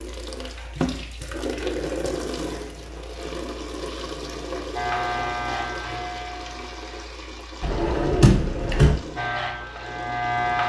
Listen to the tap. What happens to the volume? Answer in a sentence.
The loudness of the tap goes down.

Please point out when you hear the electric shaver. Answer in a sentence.
You can hear the electric shaver from 4.8 to 7.1 s and from 9.2 to 10.6 s.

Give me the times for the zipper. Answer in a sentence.
You can't hear the zipper here.